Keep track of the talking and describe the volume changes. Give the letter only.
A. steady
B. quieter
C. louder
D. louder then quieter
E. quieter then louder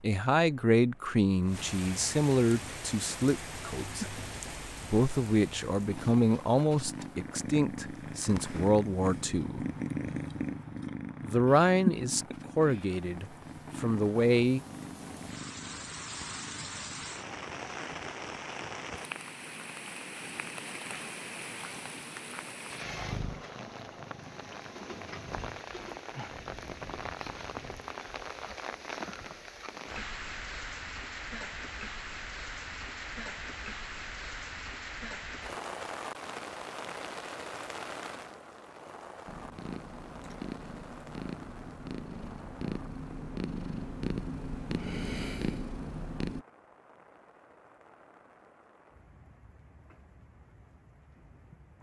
A.